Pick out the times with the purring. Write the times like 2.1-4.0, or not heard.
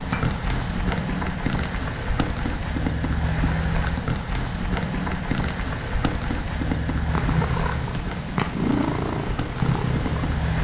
7.1-10.6.